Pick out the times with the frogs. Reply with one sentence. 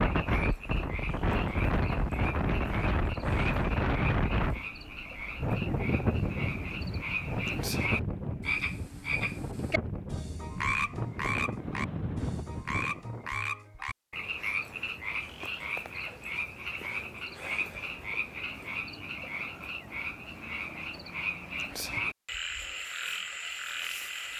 The frogs can be heard from 0.0 to 24.3 s.